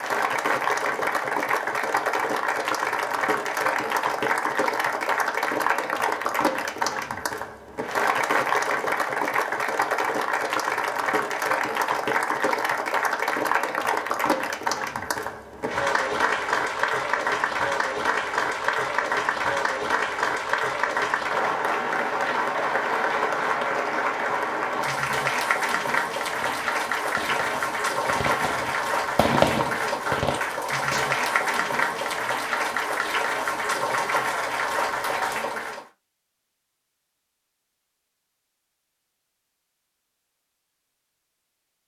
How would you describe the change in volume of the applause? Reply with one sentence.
The volume of the applause stays about the same.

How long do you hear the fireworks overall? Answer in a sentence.
You can hear the fireworks for 5 seconds altogether.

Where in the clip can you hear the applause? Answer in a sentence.
The applause can be heard from 0.0 to 35.9 s.